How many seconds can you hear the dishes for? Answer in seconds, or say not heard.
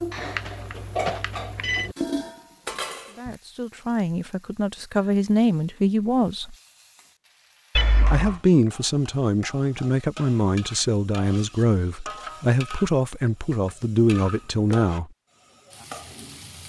3 s.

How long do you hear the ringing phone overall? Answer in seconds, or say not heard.
3 s.